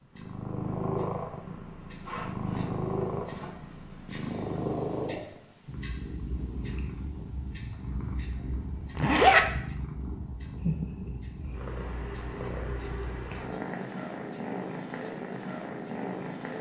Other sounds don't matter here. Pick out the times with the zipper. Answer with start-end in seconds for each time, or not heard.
2.0-3.5, 8.9-9.4.